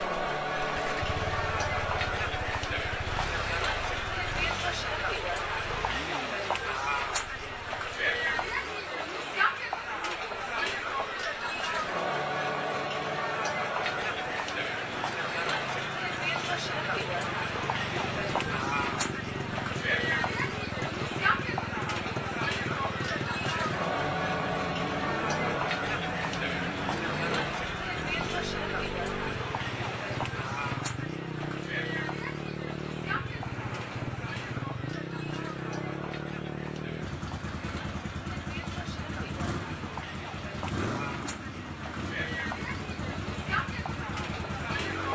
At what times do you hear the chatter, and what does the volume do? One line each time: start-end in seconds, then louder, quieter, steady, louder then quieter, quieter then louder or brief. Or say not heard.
0.0-45.1 quieter.